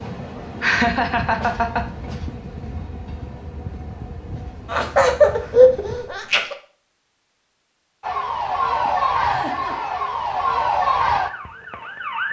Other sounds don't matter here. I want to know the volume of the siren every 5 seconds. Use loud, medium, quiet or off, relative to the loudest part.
off, loud, loud.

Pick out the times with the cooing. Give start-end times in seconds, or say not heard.
not heard.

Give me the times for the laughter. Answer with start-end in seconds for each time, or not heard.
0.6-1.9, 4.7-6.5, 8.8-9.8.